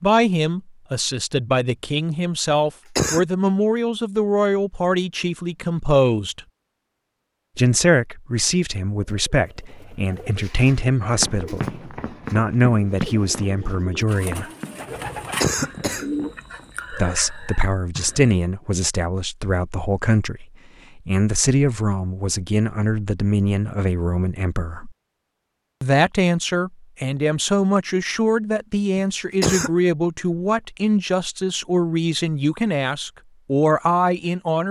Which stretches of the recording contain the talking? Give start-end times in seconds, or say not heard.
0.0-6.4, 7.5-14.5, 16.9-24.9, 25.8-34.6.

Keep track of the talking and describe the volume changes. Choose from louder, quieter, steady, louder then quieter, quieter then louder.
steady.